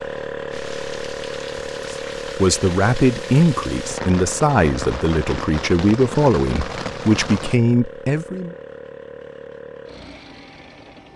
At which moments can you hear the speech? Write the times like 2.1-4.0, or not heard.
1.9-8.6.